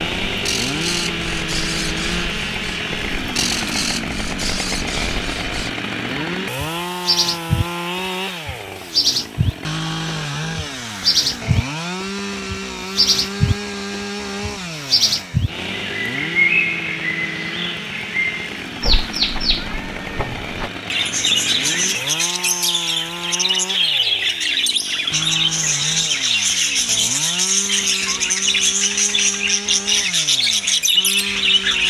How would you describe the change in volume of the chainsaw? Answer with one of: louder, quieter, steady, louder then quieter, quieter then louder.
quieter.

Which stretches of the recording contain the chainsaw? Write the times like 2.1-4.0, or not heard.
0.0-31.8.